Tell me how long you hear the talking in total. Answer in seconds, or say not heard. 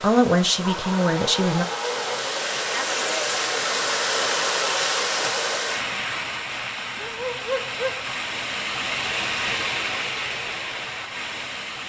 2 s.